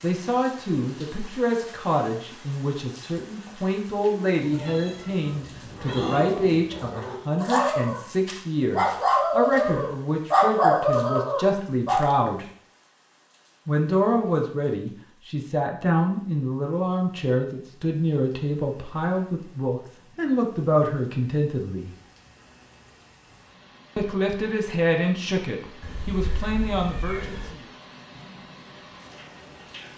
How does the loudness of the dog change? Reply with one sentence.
The loudness of the dog goes up.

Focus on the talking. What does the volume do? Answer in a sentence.
The volume of the talking stays about the same.